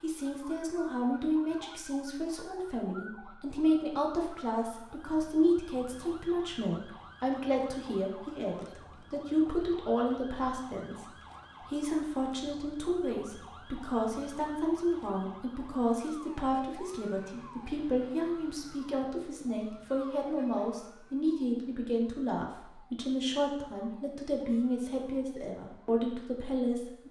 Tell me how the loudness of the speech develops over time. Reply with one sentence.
The loudness of the speech stays about the same.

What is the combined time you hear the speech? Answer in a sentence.
The speech can be heard for 26 seconds in total.